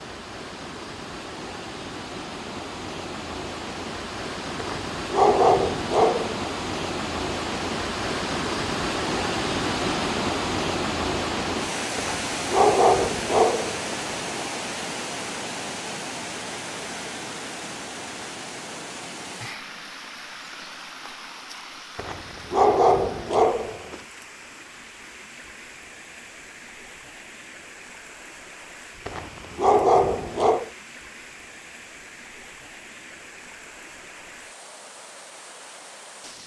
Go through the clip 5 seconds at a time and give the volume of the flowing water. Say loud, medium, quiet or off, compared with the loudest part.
medium, loud, loud, medium, quiet, quiet, quiet, quiet.